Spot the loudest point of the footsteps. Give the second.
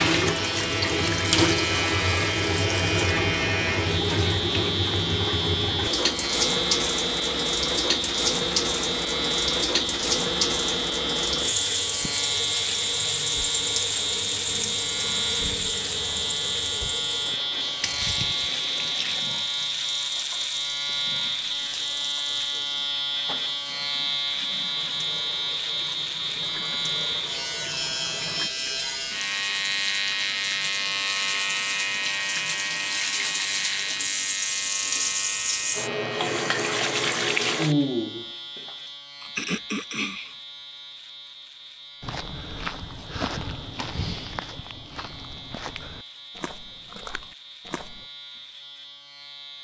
43 s.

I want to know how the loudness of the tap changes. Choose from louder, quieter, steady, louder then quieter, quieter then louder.
quieter then louder.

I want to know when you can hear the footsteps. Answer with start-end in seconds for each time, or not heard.
42.0-48.0.